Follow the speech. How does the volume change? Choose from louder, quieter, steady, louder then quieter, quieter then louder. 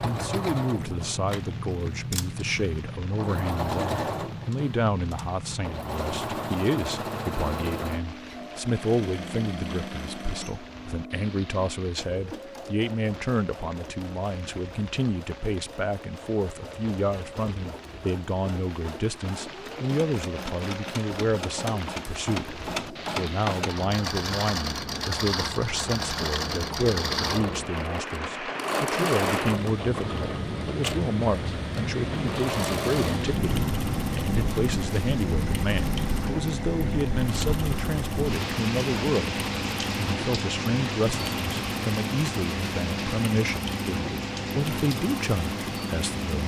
steady.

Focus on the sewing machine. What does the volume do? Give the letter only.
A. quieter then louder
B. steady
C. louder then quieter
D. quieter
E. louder
A.